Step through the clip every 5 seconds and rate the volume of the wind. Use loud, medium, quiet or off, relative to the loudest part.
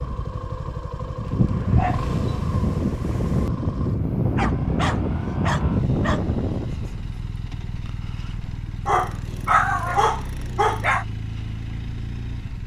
loud, loud, off.